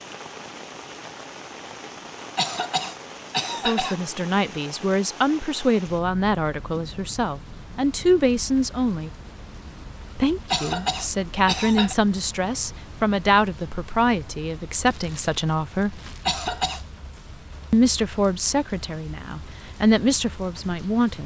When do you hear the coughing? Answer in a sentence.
The coughing can be heard from 2.4 to 4.0 s, from 10.5 to 11.9 s and from 16.2 to 16.8 s.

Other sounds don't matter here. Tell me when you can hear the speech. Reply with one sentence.
You can hear the speech from 3.6 to 9.1 s, from 10.2 to 16.0 s and from 17.7 to 21.2 s.